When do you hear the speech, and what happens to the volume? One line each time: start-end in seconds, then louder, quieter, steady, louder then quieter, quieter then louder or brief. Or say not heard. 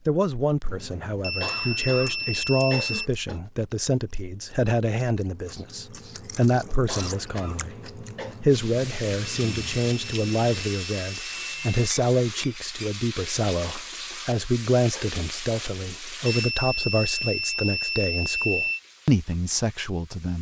0.1-20.3 steady.